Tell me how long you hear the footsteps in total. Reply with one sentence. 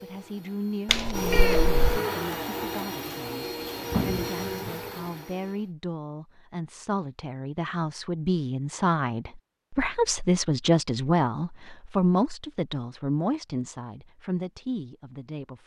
You can't hear the footsteps here.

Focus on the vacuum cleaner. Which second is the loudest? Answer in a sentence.
The loudest moment of the vacuum cleaner is at 2 seconds.